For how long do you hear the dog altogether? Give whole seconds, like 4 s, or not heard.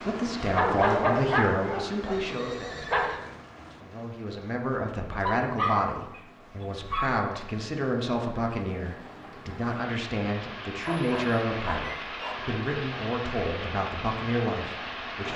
6 s.